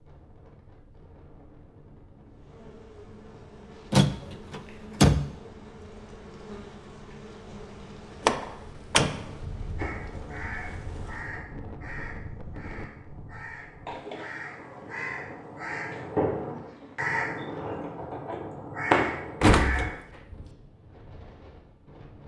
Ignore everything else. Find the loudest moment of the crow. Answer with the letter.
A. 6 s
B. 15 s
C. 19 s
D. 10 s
C.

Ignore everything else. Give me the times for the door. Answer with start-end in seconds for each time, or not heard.
3.9-5.3, 8.2-9.3, 19.4-20.4.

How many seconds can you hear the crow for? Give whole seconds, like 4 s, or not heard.
10 s.